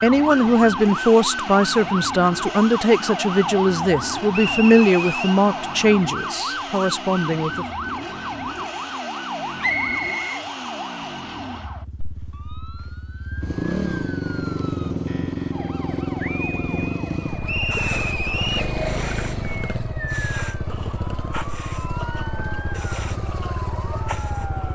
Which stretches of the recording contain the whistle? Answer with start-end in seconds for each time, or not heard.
4.3-5.4, 9.6-10.4, 17.4-18.6.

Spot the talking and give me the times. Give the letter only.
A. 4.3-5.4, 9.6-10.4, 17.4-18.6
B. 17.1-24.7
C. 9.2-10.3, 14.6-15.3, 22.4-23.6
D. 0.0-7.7
D.